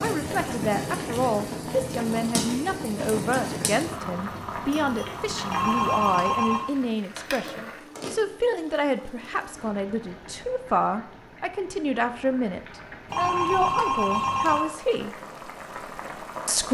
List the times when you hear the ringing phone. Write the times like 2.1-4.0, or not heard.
5.5-6.7, 13.1-14.6.